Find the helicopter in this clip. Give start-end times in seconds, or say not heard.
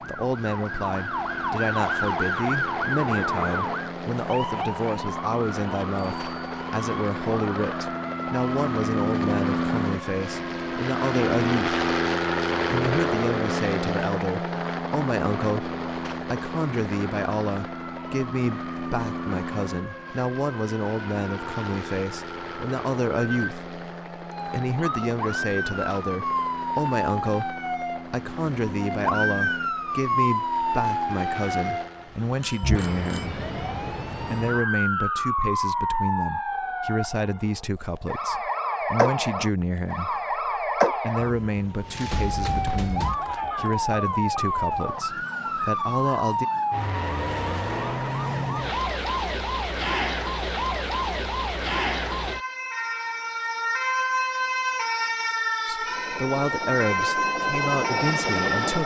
0.0-32.2, 55.8-58.8.